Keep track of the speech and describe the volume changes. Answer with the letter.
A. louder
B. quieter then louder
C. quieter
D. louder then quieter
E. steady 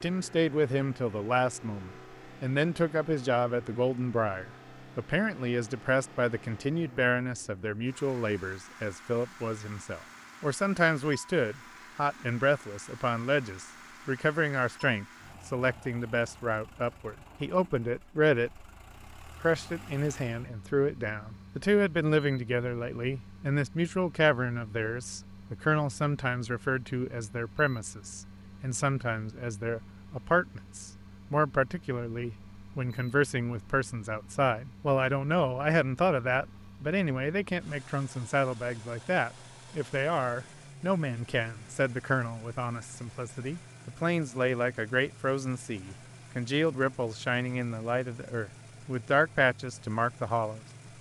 E.